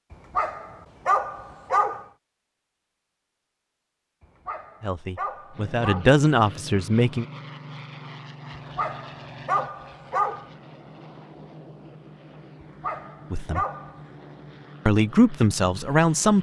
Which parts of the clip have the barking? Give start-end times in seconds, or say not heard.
0.1-2.0, 4.2-6.0, 8.8-10.4, 12.6-14.1.